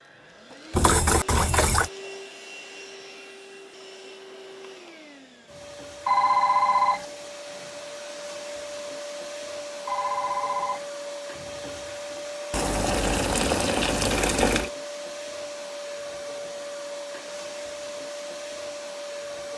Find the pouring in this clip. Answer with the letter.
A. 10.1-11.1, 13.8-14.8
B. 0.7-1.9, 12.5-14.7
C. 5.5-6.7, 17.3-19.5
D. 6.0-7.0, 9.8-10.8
B.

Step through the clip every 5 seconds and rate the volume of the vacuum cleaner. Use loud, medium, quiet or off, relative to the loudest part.
medium, loud, loud, loud.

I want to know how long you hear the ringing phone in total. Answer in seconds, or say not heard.
2 s.